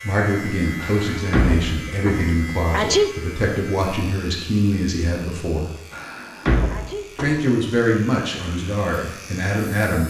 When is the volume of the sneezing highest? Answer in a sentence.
The loudest moment of the sneezing is at 3 seconds.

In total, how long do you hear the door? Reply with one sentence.
You can hear the door for 3 seconds altogether.